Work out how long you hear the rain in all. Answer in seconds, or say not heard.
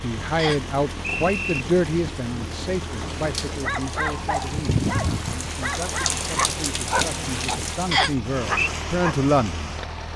10 s.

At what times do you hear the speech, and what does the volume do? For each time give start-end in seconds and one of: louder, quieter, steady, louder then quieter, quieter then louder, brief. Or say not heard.
0.0-9.8 quieter then louder.